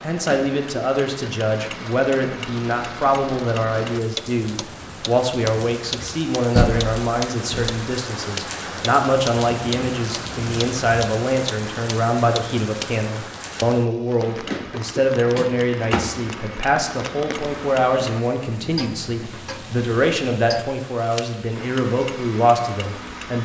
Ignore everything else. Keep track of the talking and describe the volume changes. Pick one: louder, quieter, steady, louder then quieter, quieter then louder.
steady.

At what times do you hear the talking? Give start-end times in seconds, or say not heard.
0.0-23.3.